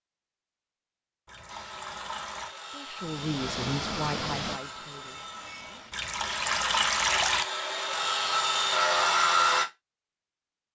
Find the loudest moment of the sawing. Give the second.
9 s.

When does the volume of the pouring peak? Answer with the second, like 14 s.
7 s.